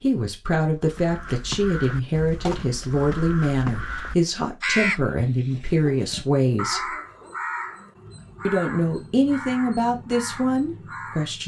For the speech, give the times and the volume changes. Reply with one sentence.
The speech can be heard from 0.0 to 7.0 s, at a steady volume; and briefly from 8.4 to 11.4 s.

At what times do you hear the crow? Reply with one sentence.
You can hear the crow from 0.8 to 11.4 s.